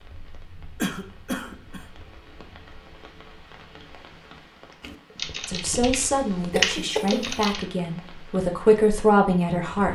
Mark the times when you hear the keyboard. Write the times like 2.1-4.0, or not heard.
4.8-7.7.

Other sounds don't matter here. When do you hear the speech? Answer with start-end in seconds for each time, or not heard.
5.5-9.9.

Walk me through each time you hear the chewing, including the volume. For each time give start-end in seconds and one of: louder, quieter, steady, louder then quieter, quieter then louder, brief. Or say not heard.
not heard.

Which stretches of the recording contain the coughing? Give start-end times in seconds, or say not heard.
0.8-1.9, 6.5-7.5.